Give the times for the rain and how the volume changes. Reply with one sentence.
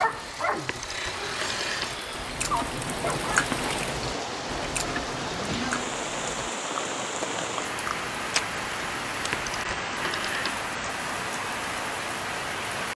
The rain can be heard from 0.0 to 12.9 s, getting louder.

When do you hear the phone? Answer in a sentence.
You can hear the phone from 0.7 to 1.9 s and from 9.3 to 10.7 s.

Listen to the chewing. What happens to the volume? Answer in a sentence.
The volume of the chewing goes down.